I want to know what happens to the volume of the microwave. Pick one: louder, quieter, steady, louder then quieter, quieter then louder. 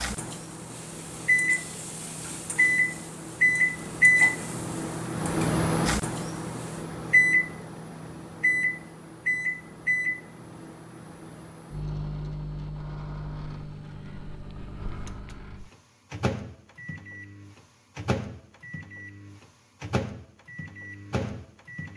quieter.